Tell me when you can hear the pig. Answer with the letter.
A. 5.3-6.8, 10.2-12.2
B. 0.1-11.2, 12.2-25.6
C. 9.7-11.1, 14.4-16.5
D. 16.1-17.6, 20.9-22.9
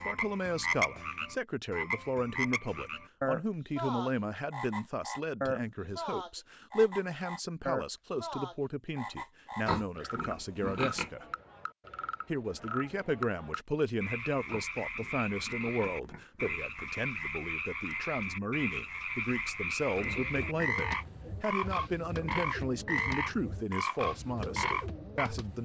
C.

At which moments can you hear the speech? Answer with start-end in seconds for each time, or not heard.
0.1-11.2, 12.2-25.6.